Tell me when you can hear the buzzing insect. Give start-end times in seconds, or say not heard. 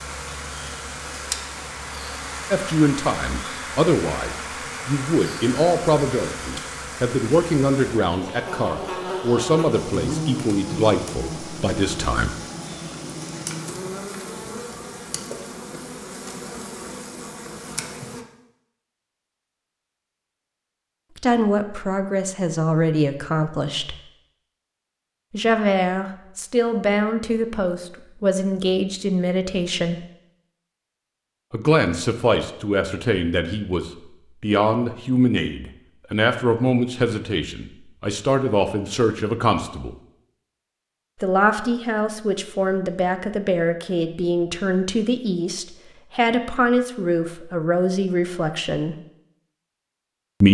0.0-18.2.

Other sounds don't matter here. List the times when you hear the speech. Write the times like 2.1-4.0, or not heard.
2.5-12.3, 21.1-23.9, 25.3-30.1, 31.5-40.0, 41.2-49.0.